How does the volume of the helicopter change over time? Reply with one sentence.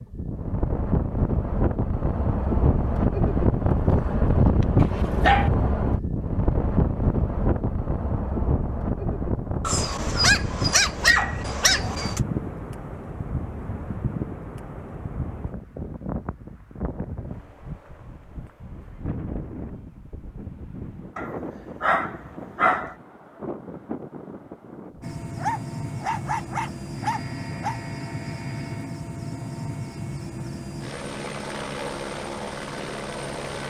The loudness of the helicopter stays about the same.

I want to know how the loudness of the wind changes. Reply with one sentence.
The volume of the wind goes down.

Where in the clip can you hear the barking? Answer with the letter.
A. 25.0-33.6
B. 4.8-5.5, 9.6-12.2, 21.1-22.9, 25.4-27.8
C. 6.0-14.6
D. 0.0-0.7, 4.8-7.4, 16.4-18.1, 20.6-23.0
B.